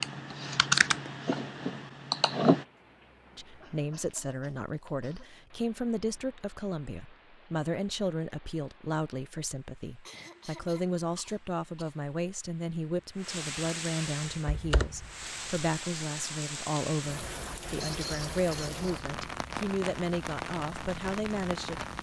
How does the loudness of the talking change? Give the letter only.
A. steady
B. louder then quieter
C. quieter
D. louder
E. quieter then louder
A.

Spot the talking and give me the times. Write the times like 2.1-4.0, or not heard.
3.4-21.9.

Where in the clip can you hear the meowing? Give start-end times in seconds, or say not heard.
not heard.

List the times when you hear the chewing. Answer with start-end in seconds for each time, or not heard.
not heard.